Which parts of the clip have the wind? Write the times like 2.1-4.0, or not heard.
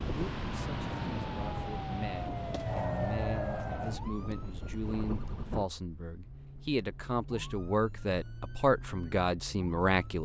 0.0-5.7.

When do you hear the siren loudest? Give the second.
3 s.